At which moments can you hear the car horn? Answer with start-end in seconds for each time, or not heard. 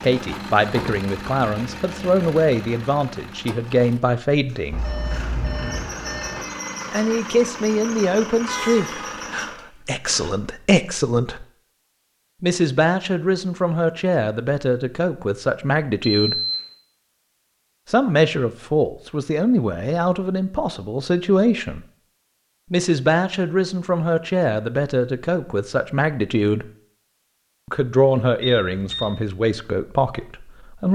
8.4-9.2.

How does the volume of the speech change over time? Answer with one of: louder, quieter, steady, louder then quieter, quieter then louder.
steady.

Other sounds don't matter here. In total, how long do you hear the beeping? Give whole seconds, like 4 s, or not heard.
3 s.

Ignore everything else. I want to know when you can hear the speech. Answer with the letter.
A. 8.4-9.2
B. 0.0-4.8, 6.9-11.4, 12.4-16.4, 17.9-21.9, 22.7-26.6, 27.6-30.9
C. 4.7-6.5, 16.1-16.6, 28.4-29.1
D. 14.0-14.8
B.